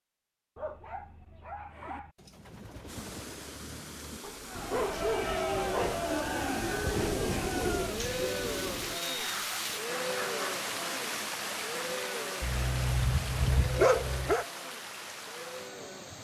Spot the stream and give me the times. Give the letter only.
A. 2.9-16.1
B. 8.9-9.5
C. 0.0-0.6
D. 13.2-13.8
A.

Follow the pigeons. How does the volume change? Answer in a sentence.
The loudness of the pigeons goes up.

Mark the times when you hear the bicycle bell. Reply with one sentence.
The bicycle bell can't be heard in this clip.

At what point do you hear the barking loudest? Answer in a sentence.
The volume of the barking peaks at 14 seconds.